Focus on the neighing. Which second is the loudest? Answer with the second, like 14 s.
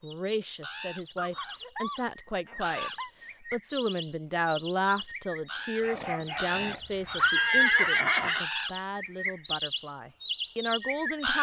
8 s.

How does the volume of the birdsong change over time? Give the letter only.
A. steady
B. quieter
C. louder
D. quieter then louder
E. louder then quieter
C.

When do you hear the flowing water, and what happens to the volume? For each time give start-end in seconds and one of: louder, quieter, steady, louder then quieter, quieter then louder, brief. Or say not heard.
not heard.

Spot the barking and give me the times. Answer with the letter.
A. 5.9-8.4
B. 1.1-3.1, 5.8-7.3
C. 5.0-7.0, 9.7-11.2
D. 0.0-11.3
B.